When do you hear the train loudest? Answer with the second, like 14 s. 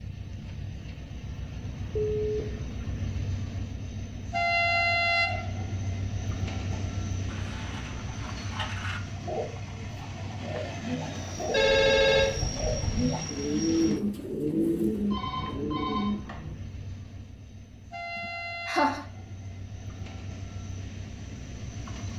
5 s.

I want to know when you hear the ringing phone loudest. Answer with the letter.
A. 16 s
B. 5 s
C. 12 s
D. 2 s
C.